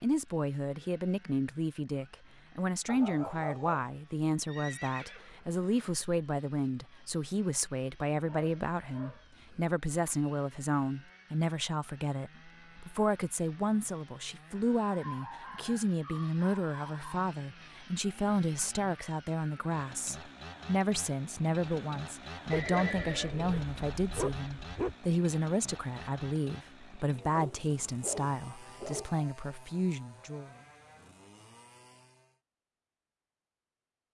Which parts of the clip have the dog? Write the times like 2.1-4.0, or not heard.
2.9-3.9, 8.2-9.8, 14.9-17.3, 22.5-24.9, 27.3-29.3.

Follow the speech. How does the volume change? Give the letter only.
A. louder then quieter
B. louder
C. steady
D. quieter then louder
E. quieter
C.